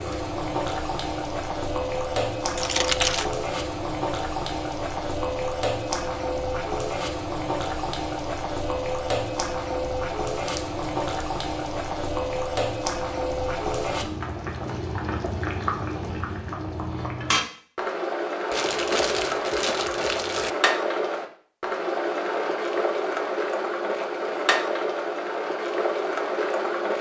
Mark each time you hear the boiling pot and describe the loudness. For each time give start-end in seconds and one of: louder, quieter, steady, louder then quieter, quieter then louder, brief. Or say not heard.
0.0-26.9 steady.